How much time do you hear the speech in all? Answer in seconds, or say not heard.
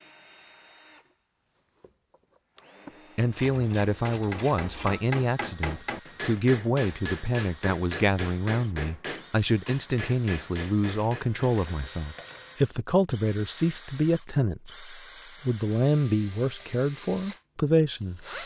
15 s.